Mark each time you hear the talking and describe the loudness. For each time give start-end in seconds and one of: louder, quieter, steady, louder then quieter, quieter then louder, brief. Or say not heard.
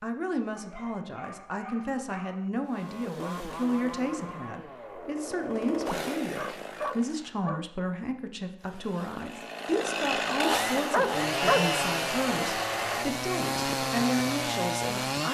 0.0-15.2 steady.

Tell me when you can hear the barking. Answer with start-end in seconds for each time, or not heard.
0.6-2.5, 5.8-7.7, 10.5-13.1.